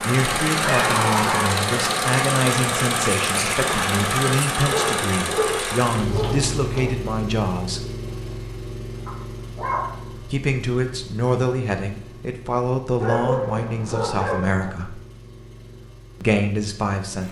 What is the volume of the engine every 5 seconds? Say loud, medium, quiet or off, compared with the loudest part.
loud, medium, quiet, quiet.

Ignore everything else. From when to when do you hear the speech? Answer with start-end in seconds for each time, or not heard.
0.1-7.8, 10.2-15.0, 16.2-17.2.